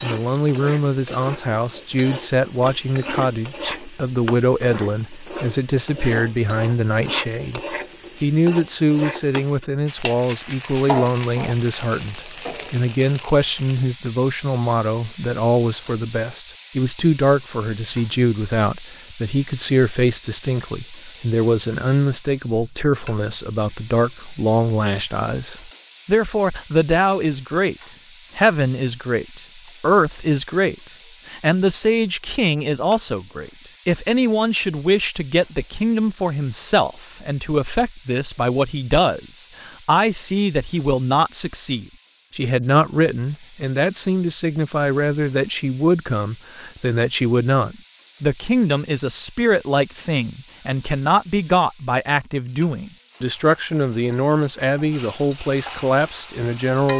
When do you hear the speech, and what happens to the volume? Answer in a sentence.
You can hear the speech from 0.0 to 56.9 s, at a steady volume.